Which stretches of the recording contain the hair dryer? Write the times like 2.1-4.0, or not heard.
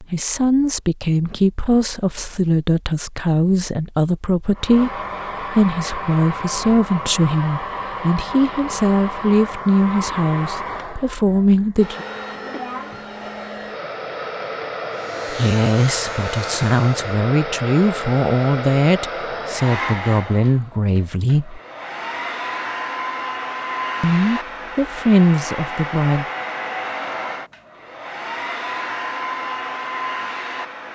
4.5-30.8.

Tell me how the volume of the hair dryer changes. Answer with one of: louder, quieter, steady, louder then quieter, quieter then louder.
steady.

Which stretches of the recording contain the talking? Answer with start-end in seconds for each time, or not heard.
0.0-12.1, 15.3-21.6, 24.0-26.2.